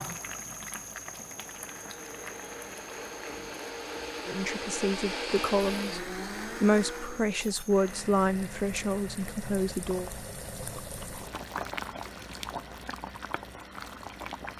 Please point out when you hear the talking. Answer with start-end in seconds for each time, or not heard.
4.2-10.1.